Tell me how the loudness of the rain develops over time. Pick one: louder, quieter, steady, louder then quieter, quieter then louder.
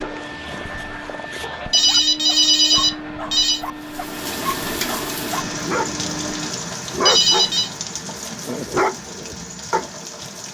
quieter.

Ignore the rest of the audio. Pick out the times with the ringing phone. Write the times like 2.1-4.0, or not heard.
1.7-3.6, 7.0-7.7.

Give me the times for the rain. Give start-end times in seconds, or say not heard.
3.8-10.4.